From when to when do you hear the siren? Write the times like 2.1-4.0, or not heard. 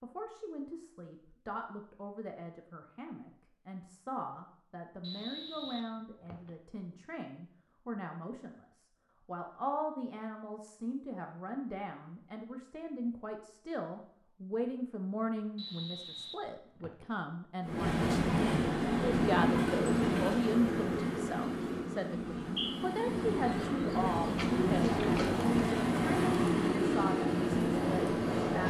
not heard.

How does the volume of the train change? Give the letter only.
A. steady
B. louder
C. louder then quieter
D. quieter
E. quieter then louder
E.